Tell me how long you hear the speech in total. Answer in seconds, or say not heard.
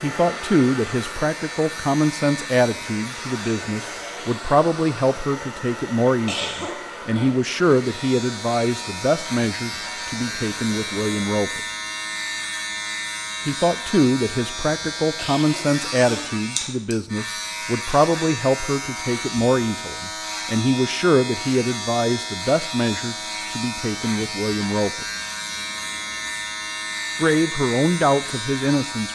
25 s.